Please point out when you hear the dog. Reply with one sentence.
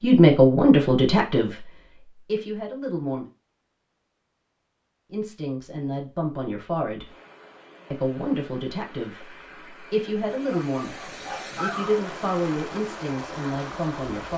You can hear the dog from 10.4 to 11.9 s.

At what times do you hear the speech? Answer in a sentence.
The speech can be heard from 0.0 to 3.2 s, from 5.1 to 7.0 s and from 7.9 to 14.3 s.